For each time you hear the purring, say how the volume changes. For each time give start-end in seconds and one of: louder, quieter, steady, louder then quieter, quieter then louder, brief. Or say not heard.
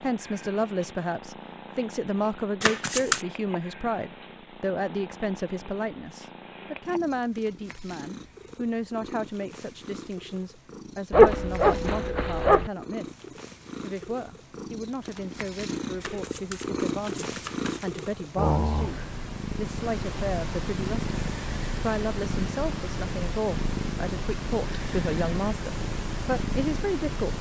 0.0-27.3 louder.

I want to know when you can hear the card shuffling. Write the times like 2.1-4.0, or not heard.
2.6-3.2, 16.0-18.0.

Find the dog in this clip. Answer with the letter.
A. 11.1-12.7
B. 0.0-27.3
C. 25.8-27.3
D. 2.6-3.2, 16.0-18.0
A.